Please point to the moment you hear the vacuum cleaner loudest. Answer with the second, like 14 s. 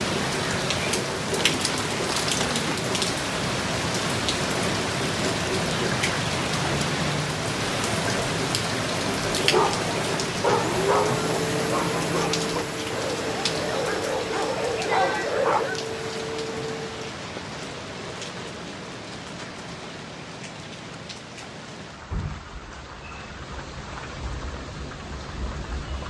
11 s.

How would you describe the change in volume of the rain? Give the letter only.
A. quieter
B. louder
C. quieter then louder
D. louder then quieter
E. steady
A.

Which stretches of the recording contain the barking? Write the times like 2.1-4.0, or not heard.
9.5-15.7.